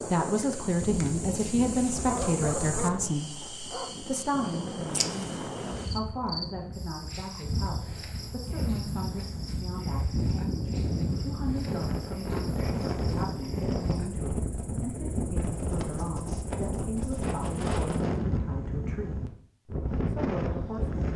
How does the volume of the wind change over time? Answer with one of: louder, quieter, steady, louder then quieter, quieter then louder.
louder.